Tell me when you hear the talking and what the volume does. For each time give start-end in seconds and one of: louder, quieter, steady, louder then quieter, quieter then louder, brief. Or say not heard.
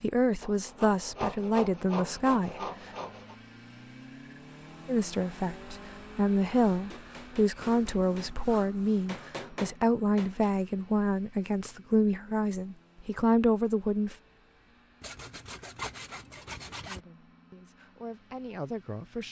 0.0-2.9 brief
4.8-14.2 steady
16.9-19.2 brief.